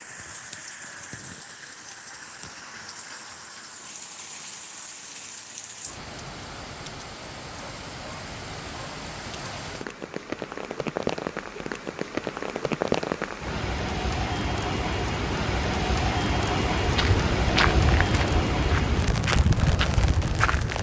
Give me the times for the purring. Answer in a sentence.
You can't hear the purring here.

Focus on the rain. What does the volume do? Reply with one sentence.
The loudness of the rain goes up.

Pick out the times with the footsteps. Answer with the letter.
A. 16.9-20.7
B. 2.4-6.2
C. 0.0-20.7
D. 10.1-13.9
A.